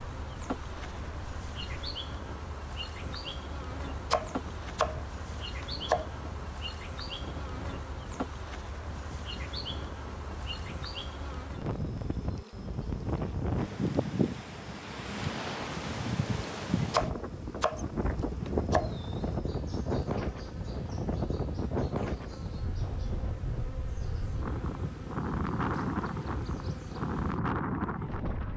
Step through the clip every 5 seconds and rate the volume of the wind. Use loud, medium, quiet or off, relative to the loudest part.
quiet, quiet, loud, loud, loud, loud.